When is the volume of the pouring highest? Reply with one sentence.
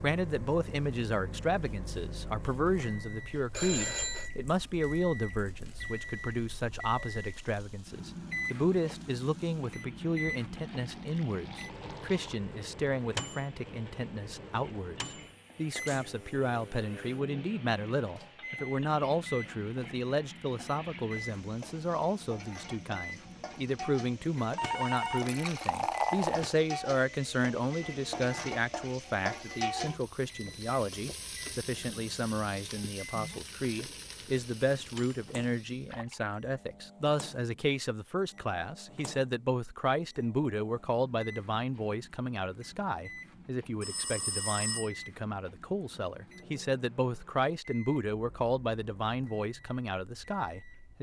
The volume of the pouring peaks at 26 seconds.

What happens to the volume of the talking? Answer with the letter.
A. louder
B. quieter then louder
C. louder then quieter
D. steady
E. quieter
D.